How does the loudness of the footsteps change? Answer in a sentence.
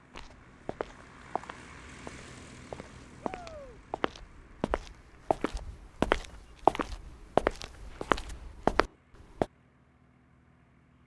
The loudness of the footsteps goes up.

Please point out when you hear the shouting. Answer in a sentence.
The shouting can be heard from 3.2 to 3.8 s.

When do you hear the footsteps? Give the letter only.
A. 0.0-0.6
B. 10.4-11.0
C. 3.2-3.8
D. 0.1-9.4
D.